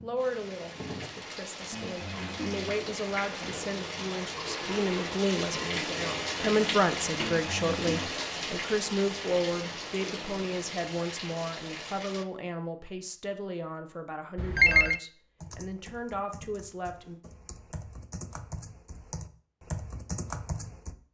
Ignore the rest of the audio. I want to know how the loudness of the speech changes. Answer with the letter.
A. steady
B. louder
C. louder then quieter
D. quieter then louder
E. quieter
C.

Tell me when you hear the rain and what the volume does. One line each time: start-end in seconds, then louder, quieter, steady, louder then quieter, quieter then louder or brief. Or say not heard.
0.0-12.2 louder then quieter.